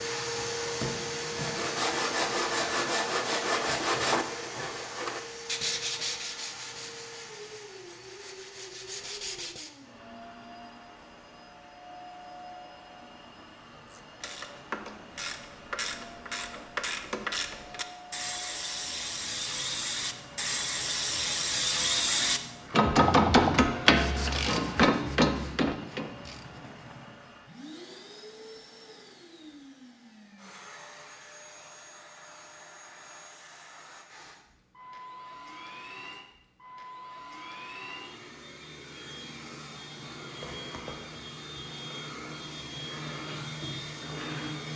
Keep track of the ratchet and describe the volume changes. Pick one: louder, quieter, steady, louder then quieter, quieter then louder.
louder.